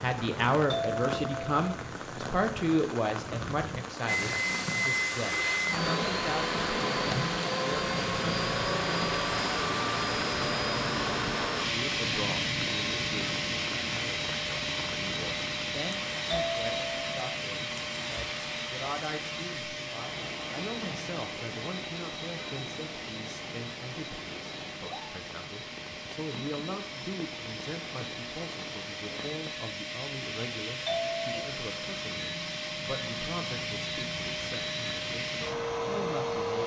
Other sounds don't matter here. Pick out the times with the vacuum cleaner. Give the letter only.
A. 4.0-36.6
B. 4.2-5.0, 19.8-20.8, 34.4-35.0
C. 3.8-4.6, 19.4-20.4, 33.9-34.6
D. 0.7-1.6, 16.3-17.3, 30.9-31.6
A.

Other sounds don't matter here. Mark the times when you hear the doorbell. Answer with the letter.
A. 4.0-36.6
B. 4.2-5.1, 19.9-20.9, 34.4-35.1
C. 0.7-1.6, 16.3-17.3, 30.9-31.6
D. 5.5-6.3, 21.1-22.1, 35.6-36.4
C.